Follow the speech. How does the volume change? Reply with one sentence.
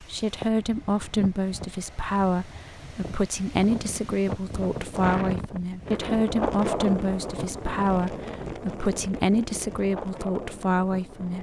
The loudness of the speech stays about the same.